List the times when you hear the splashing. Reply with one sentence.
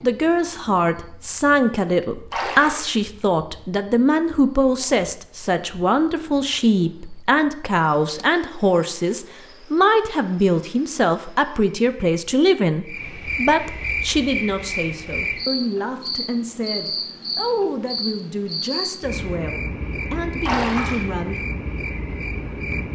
The splashing can be heard from 2.3 to 3.0 s and from 20.4 to 21.1 s.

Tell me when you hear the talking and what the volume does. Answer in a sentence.
The talking can be heard from 0.0 to 21.4 s, getting quieter.